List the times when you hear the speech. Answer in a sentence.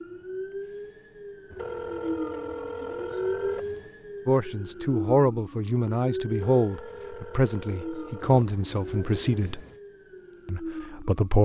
The speech can be heard from 4.2 to 9.6 s and from 10.4 to 11.4 s.